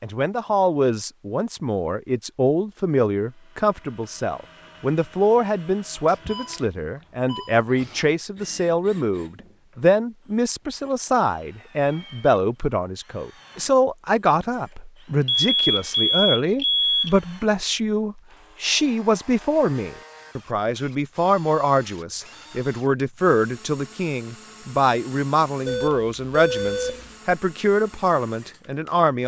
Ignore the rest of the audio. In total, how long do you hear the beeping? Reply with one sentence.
You can hear the beeping for 5 seconds altogether.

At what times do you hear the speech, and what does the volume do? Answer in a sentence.
The speech can be heard from 0.0 to 29.2 s, at a steady volume.